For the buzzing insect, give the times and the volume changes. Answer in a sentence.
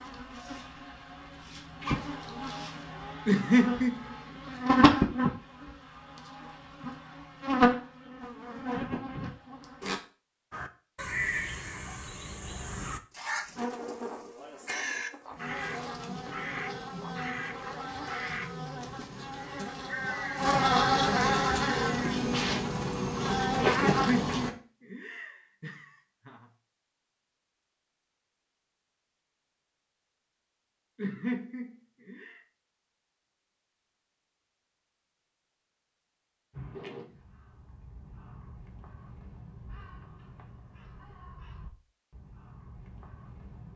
You can hear the buzzing insect from 0.0 to 10.0 s, getting louder then quieter; and from 13.6 to 24.5 s, getting louder.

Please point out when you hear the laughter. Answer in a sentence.
You can hear the laughter from 3.2 to 4.0 s, from 23.9 to 26.4 s and from 30.9 to 32.4 s.